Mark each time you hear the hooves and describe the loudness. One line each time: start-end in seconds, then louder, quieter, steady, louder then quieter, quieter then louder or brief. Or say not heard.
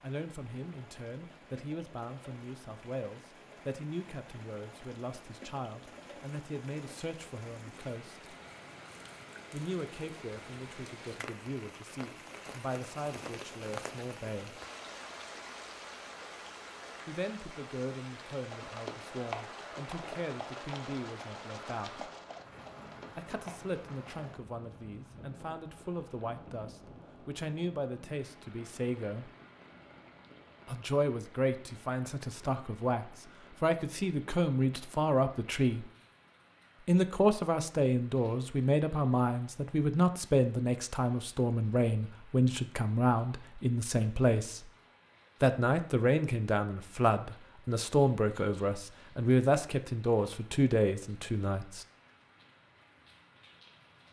18.5-24.4 quieter.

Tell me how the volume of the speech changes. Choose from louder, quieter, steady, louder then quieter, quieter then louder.
louder.